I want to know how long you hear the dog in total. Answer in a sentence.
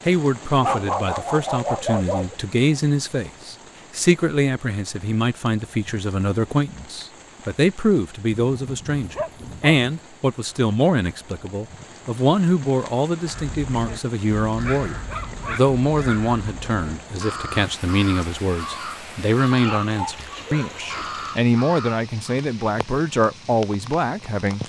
You can hear the dog for 6 seconds altogether.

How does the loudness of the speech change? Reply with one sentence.
The volume of the speech stays about the same.